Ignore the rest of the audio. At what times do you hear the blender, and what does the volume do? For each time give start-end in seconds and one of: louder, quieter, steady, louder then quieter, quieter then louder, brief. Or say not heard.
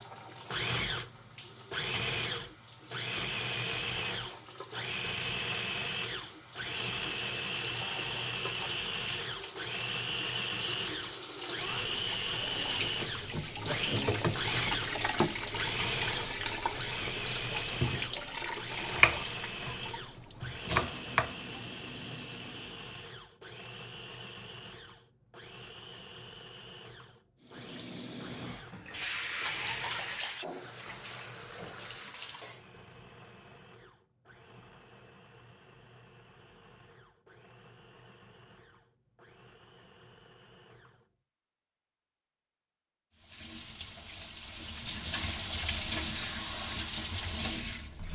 0.0-41.1 quieter.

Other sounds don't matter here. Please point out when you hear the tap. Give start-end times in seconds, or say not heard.
0.0-23.1, 27.4-32.6, 43.1-48.1.